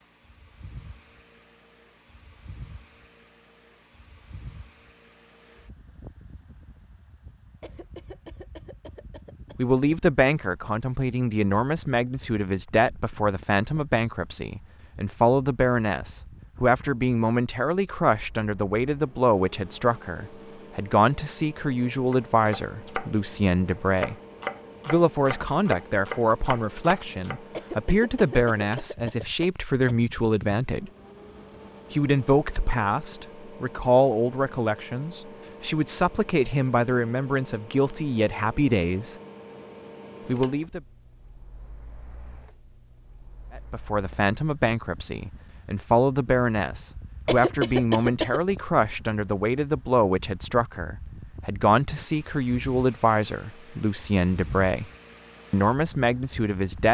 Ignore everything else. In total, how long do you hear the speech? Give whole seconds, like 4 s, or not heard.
41 s.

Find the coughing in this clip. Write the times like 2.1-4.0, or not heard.
7.6-9.6, 27.5-29.9, 47.2-48.5.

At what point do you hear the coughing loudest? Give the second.
48 s.